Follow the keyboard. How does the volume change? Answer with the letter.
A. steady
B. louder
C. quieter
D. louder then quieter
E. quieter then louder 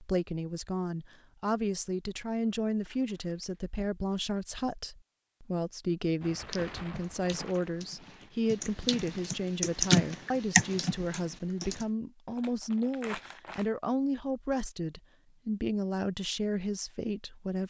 B.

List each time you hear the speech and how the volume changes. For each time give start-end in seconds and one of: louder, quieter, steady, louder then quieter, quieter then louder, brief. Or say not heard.
0.0-17.6 steady.